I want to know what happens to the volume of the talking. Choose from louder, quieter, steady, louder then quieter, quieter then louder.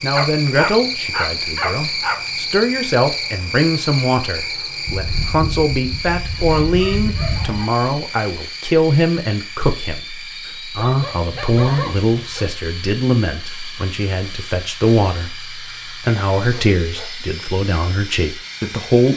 steady.